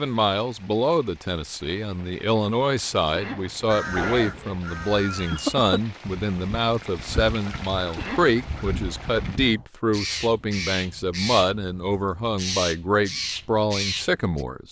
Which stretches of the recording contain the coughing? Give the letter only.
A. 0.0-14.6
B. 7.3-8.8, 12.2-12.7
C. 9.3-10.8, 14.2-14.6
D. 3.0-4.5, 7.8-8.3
D.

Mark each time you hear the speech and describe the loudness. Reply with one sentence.
You can hear the speech from 0.0 to 14.6 s, at a steady volume.